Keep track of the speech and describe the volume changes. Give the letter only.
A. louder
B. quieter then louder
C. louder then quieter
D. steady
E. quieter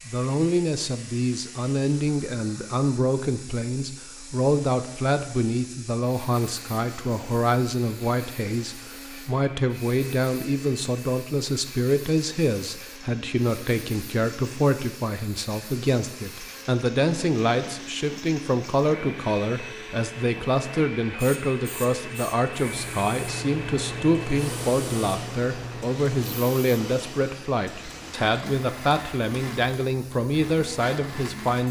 D.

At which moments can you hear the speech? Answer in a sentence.
You can hear the speech from 0.1 to 31.6 s.